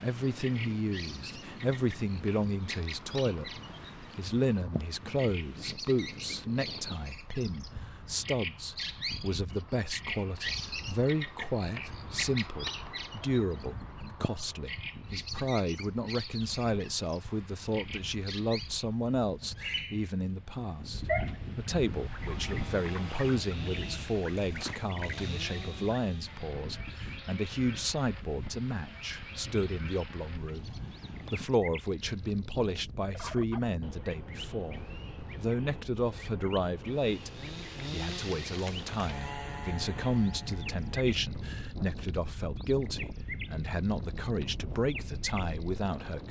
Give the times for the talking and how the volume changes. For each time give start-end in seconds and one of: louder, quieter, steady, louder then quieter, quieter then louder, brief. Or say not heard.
0.0-46.2 steady.